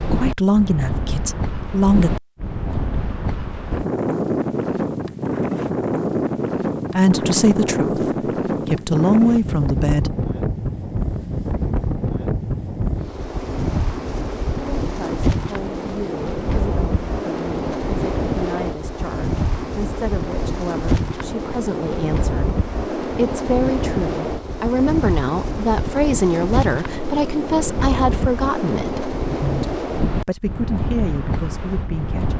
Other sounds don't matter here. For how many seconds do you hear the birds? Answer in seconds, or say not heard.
not heard.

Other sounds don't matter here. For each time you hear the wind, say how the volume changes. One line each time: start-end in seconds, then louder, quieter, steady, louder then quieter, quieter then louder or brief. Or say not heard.
0.0-32.3 steady.